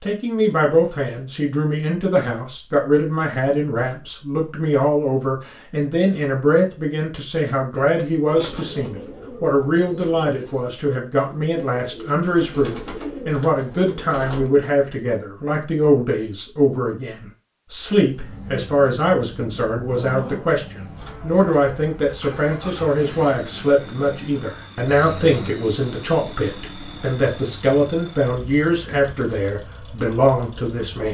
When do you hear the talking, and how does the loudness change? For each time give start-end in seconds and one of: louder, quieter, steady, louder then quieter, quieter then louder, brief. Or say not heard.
0.0-31.0 steady.